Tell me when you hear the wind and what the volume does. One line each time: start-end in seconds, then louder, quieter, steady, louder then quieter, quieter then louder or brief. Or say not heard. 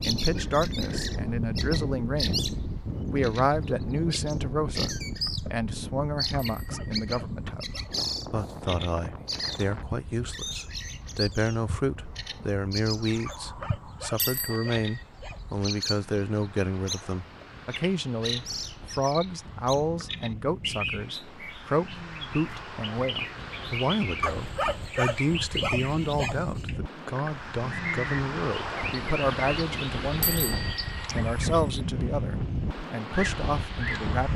0.0-34.3 quieter then louder.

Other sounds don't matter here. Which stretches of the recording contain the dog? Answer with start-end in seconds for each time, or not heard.
6.5-7.9, 13.2-15.5, 24.2-26.8.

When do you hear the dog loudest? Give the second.
25 s.